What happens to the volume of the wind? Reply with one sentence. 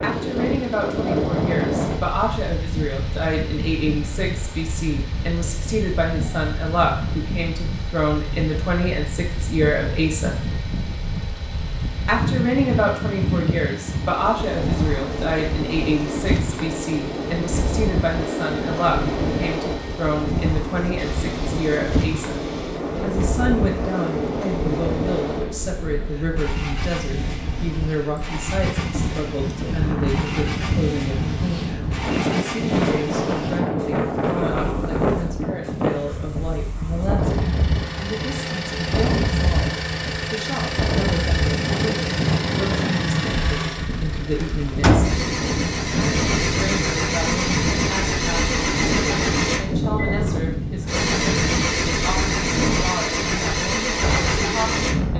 The loudness of the wind stays about the same.